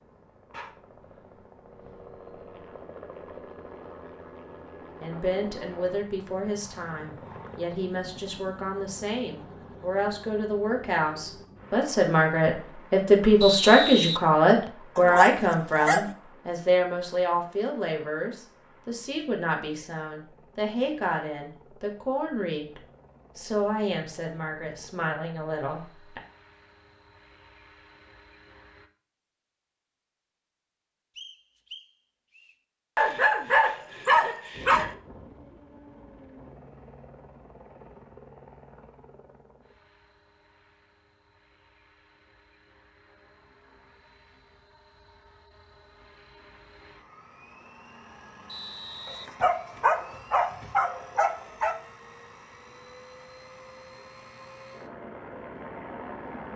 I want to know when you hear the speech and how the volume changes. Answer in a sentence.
The speech can be heard from 5.0 to 26.2 s, getting louder then quieter.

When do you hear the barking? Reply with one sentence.
The barking can be heard from 14.9 to 16.1 s, from 33.0 to 35.0 s and from 49.0 to 51.8 s.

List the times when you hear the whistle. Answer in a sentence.
The whistle can be heard from 13.4 to 14.7 s, from 31.1 to 32.5 s and from 48.5 to 49.3 s.